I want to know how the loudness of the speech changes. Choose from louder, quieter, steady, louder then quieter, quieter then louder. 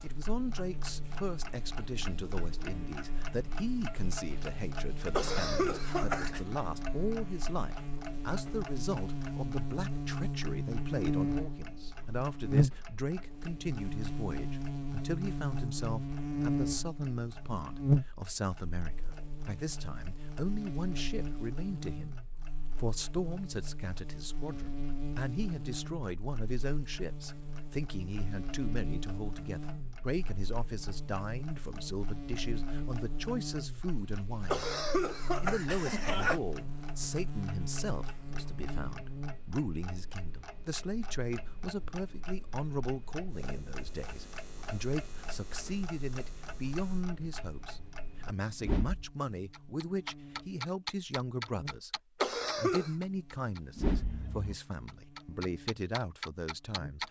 steady.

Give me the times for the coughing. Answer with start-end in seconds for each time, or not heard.
5.1-6.4, 34.5-36.4, 52.2-52.9.